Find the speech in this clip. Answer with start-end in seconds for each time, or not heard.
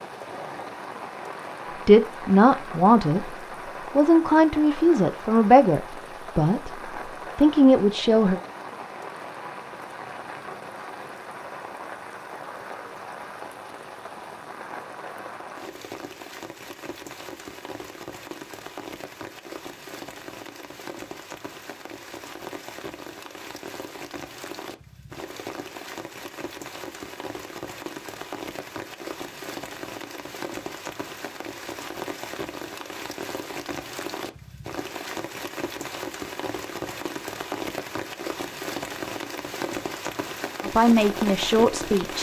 1.9-3.3, 4.0-6.7, 7.3-8.4, 40.6-42.1.